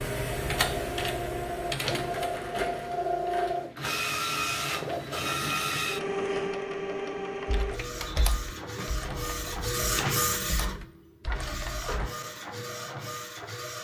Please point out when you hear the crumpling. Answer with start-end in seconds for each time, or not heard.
1.6-3.5.